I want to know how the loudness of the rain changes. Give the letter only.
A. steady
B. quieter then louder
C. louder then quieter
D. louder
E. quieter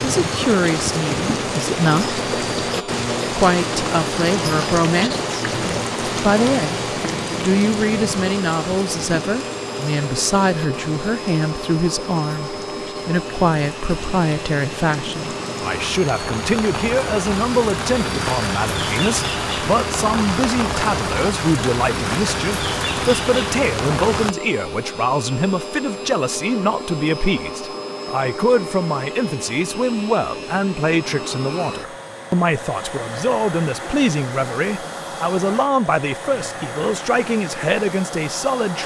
B.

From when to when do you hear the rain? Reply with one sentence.
You can hear the rain from 0.0 to 24.4 s.